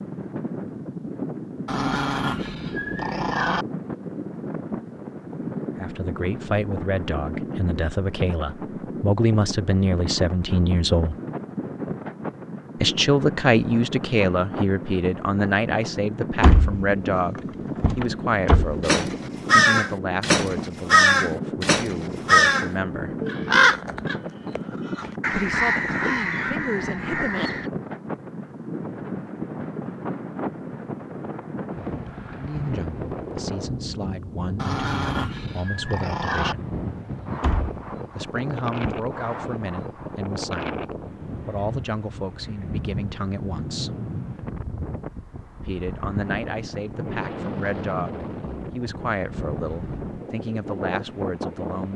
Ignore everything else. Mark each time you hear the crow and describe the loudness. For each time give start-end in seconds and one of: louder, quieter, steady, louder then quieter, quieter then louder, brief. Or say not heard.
18.8-27.7 quieter.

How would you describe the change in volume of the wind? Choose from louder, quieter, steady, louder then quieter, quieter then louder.
steady.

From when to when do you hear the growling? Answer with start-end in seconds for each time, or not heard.
1.6-3.6, 34.5-36.5.